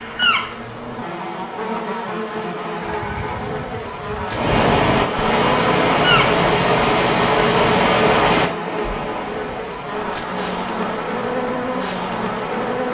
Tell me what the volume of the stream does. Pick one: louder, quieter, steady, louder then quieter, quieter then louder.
quieter.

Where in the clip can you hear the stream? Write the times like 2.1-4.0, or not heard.
4.2-12.8.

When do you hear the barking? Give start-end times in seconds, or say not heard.
not heard.